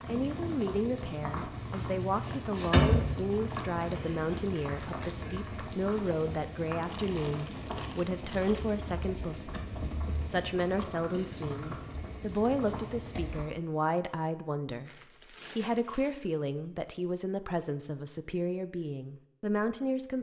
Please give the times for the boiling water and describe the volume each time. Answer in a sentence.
You can hear the boiling water from 0.0 to 13.5 s, getting quieter.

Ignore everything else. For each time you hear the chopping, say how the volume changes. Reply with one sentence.
You can't hear the chopping here.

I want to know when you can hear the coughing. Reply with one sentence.
You can't hear the coughing here.